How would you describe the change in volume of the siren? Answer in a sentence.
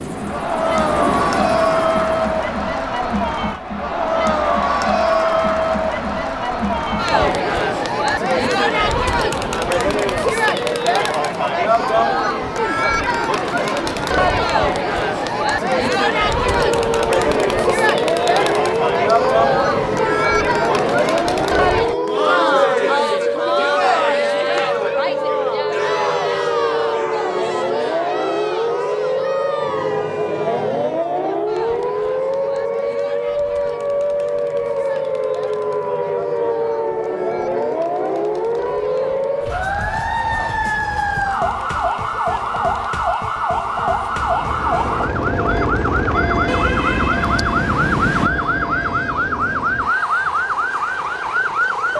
The volume of the siren stays about the same.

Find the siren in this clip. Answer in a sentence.
You can hear the siren from 16.4 to 51.9 s.